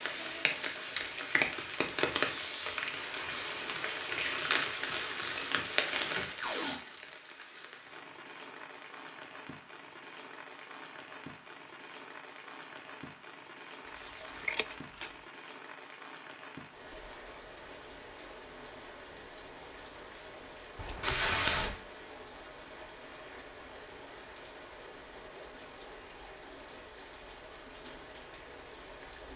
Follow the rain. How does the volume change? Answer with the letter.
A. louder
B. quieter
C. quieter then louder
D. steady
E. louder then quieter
B.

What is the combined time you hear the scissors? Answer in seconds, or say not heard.
3 s.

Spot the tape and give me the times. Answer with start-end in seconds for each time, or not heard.
4.8-6.8, 13.9-15.1, 21.0-21.8.